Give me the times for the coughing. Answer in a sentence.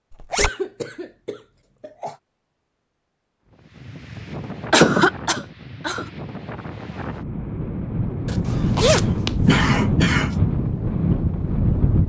You can hear the coughing from 0.3 to 2.1 s, from 4.7 to 6.0 s and from 8.4 to 10.3 s.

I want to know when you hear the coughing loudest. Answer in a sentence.
The loudest moment of the coughing is at 5 seconds.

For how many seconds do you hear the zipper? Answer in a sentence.
The zipper can be heard for 2 seconds in total.